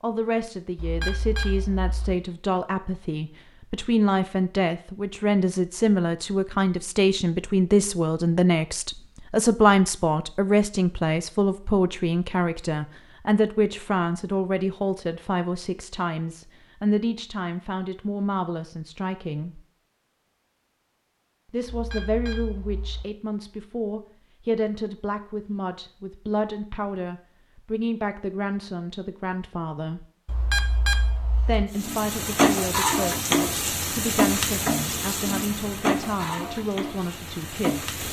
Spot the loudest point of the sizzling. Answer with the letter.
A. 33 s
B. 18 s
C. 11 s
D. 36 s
A.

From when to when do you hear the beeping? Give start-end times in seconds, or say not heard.
0.8-2.1, 21.6-23.1, 30.2-31.6.